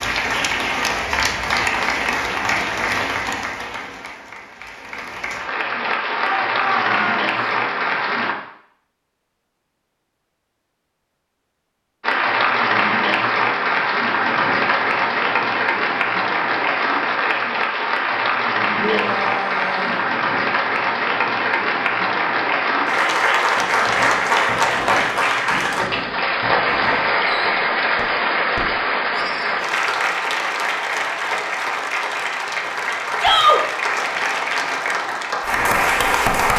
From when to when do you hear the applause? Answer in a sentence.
You can hear the applause from 0.0 to 8.3 s and from 12.0 to 36.5 s.